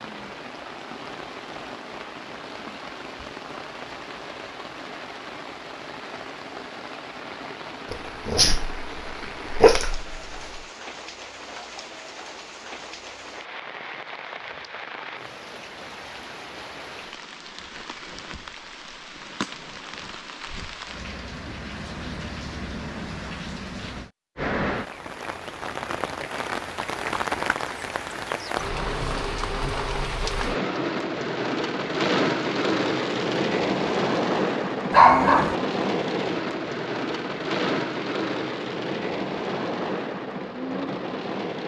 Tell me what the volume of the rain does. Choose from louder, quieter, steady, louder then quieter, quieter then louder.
louder.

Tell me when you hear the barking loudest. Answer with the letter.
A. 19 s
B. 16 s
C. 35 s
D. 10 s
C.